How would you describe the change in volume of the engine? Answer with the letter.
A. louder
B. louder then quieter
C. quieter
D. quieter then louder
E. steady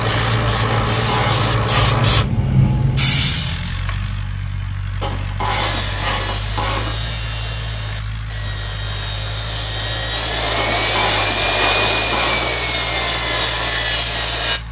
C.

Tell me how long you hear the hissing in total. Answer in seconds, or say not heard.
4 s.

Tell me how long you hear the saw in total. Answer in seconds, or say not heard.
9 s.